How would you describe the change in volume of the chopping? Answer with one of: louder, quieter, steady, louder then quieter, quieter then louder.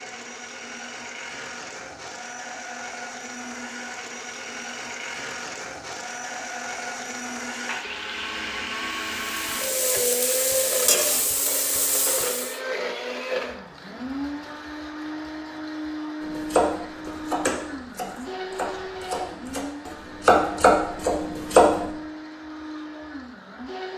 quieter then louder.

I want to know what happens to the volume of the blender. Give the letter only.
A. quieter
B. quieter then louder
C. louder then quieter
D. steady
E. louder
C.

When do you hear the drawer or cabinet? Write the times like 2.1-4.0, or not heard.
not heard.